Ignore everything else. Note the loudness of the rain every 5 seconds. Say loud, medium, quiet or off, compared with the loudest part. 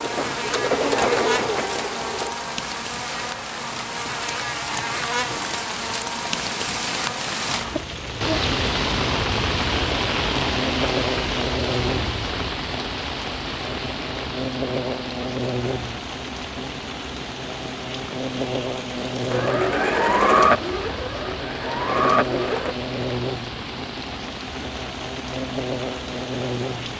medium, loud, loud, medium, medium, medium.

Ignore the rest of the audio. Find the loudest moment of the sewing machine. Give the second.
20 s.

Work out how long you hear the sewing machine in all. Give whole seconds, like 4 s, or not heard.
6 s.